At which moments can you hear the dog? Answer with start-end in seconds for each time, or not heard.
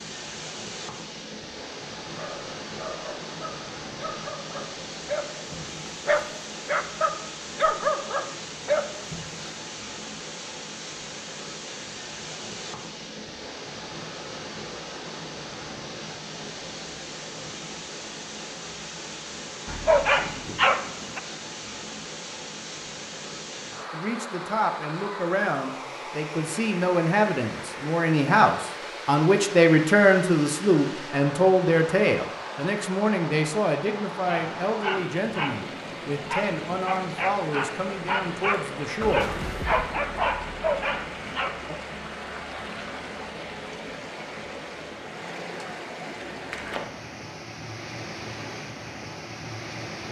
2.1-9.5, 19.6-21.2, 34.1-41.5.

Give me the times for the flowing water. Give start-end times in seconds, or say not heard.
0.0-50.0.